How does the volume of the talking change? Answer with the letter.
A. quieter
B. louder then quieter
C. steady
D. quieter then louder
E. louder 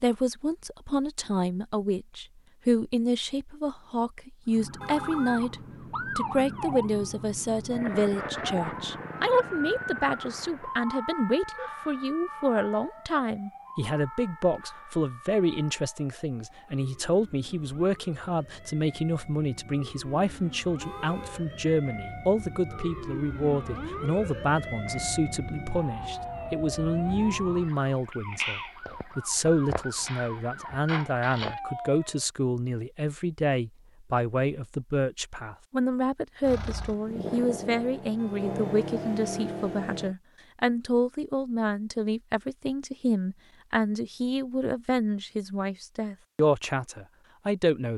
C.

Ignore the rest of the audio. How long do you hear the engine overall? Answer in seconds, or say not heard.
4 s.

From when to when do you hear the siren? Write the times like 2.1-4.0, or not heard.
4.5-32.2.